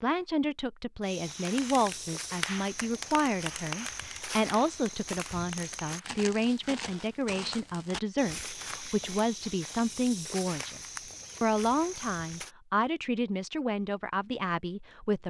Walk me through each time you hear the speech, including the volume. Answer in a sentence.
The speech can be heard from 0.0 to 15.2 s, at a steady volume.